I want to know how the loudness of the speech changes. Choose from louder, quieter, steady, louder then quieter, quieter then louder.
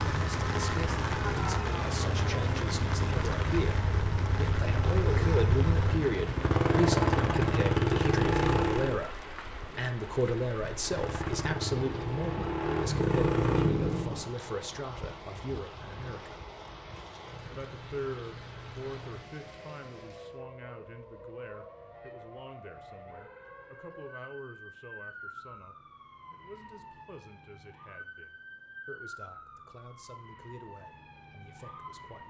quieter.